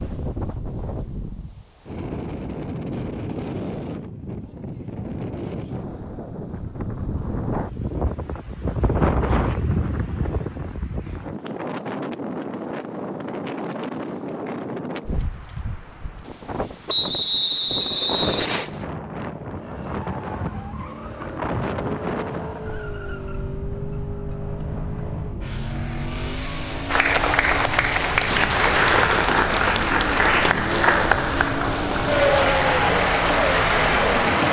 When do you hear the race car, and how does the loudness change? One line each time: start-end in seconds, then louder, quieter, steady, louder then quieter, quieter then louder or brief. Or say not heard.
18.6-34.4 louder.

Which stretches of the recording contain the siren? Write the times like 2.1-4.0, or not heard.
not heard.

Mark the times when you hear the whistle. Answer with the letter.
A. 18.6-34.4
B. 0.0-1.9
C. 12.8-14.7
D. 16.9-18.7
D.